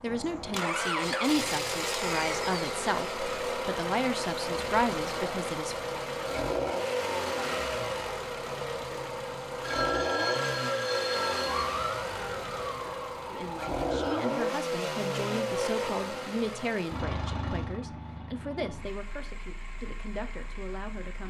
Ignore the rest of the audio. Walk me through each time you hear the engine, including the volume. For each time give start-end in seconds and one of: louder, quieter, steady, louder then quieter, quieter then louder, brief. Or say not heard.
0.0-21.2 quieter.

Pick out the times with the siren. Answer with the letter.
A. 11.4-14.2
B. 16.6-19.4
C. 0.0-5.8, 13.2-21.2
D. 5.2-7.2
A.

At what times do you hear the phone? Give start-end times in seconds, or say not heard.
9.6-11.7.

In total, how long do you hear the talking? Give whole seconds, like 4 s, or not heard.
14 s.